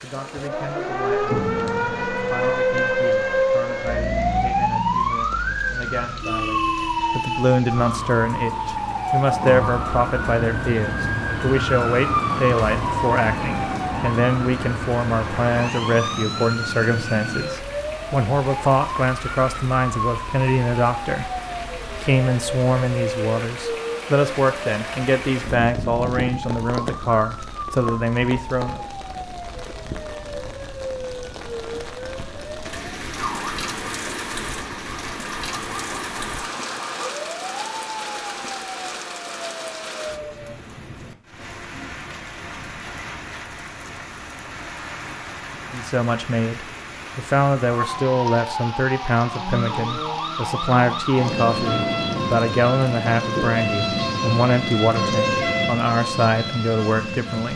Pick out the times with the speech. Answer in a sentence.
You can hear the speech from 0.0 to 28.9 s and from 45.7 to 57.5 s.